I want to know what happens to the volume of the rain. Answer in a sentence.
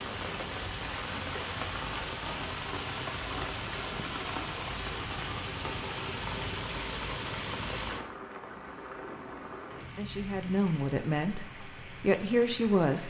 The loudness of the rain goes down.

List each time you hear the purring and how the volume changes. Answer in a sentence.
You can't hear the purring here.